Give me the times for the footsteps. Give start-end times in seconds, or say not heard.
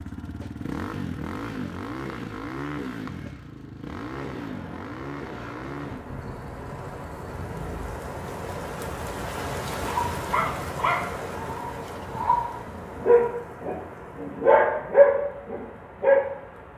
not heard.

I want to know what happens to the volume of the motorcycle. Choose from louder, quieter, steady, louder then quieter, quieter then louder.
quieter.